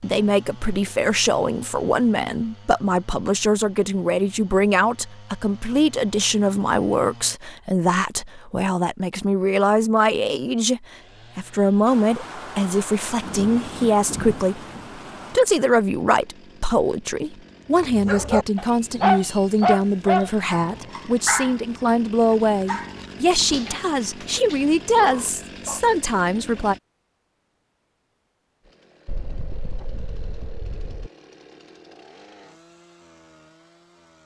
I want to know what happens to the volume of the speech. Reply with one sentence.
The loudness of the speech stays about the same.